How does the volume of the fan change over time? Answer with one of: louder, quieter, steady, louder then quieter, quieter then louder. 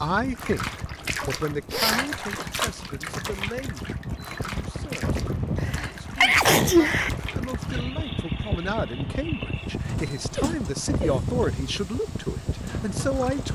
louder.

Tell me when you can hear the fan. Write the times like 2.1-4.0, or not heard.
0.0-13.5.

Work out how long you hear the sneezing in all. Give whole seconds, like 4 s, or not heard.
3 s.